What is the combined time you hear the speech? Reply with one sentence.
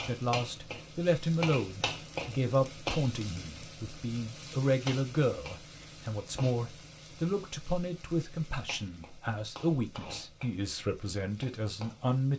The speech can be heard for 12 seconds in total.